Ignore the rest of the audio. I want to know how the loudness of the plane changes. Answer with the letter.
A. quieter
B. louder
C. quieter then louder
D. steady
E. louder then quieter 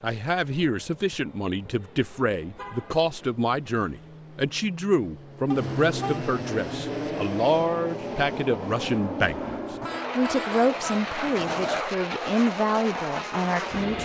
B.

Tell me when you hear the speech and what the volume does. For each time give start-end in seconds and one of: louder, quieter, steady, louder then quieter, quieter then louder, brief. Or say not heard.
0.0-14.0 steady.